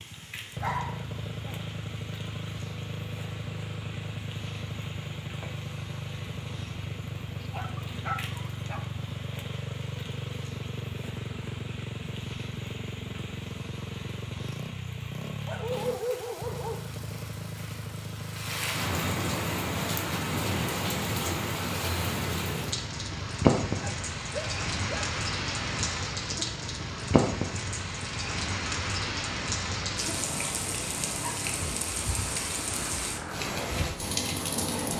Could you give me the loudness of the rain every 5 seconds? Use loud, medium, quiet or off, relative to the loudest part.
quiet, quiet, quiet, medium, loud, loud, loud.